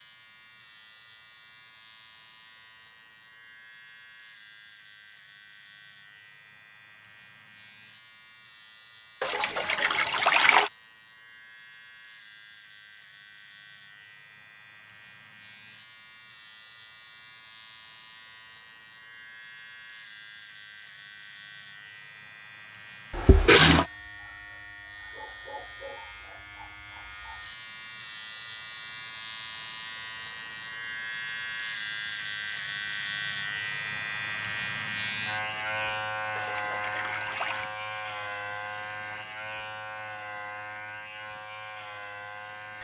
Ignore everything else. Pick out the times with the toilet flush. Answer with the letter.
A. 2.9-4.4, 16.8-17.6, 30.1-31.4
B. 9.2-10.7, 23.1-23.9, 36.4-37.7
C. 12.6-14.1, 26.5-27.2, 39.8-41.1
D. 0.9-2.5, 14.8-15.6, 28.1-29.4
B.